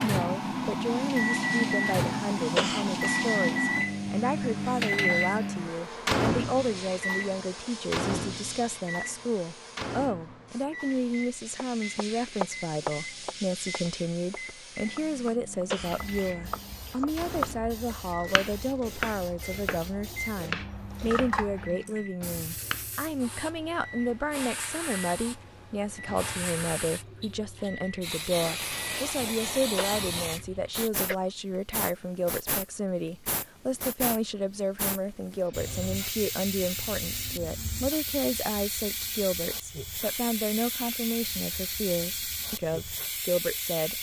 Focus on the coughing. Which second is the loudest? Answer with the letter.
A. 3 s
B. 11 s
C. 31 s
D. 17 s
A.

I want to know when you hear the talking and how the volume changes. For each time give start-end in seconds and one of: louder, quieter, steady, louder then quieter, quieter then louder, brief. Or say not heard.
0.0-43.9 steady.